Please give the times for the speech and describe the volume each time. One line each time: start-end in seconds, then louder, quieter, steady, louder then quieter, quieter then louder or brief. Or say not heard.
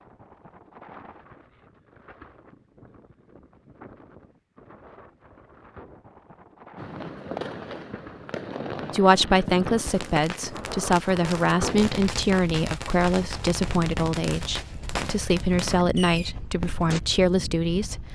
8.9-18.0 steady.